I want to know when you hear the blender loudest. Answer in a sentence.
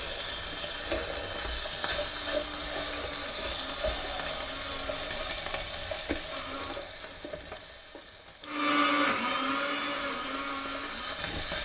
The volume of the blender peaks at 9 seconds.